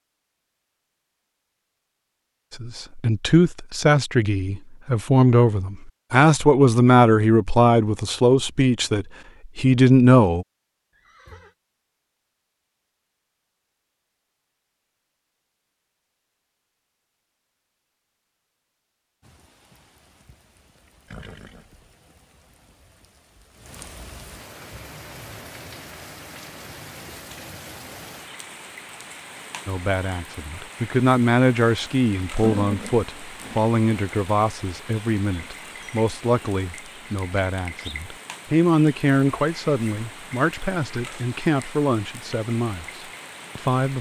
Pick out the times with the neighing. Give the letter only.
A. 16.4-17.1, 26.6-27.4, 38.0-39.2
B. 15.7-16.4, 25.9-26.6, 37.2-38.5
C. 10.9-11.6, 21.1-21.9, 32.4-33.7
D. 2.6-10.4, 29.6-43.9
C.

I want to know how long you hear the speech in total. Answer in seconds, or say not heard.
22 s.